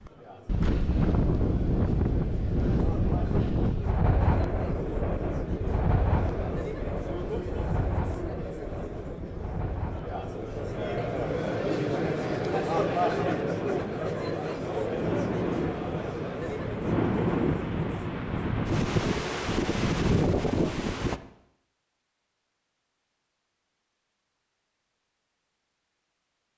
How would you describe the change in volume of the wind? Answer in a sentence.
The loudness of the wind goes down, then up.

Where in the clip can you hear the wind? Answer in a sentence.
The wind can be heard from 0.1 to 21.2 s.